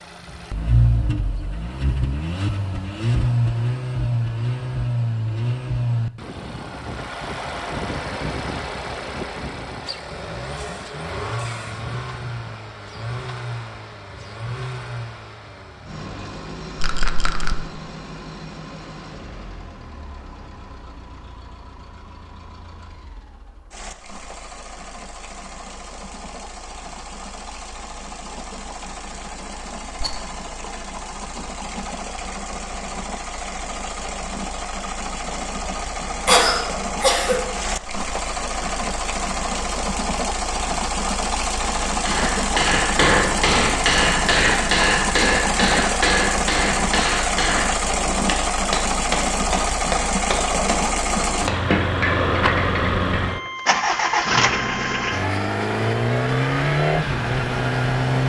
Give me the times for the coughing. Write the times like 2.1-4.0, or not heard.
36.2-37.4.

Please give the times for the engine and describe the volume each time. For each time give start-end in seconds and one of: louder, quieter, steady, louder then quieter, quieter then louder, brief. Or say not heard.
0.0-58.2 quieter then louder.